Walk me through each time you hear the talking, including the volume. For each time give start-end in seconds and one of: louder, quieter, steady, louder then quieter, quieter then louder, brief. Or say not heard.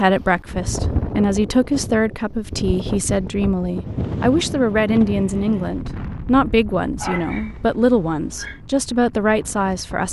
0.0-10.0 steady.